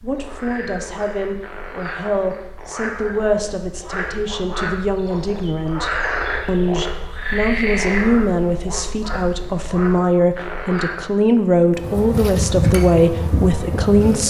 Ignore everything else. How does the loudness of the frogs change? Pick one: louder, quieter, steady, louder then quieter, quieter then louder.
louder then quieter.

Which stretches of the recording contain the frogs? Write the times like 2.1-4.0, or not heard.
0.0-10.9.